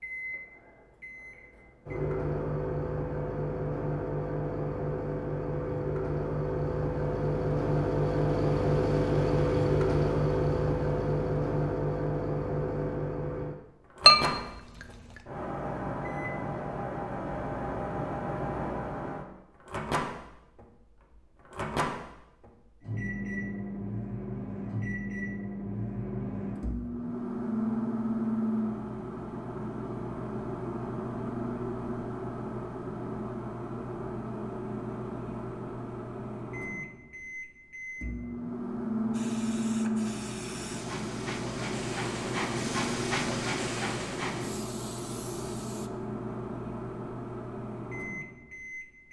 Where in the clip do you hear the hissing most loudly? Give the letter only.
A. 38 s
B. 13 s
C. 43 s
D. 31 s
C.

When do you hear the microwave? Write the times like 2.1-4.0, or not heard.
0.0-49.0.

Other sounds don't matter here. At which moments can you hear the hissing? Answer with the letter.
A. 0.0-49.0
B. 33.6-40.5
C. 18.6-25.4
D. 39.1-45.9
D.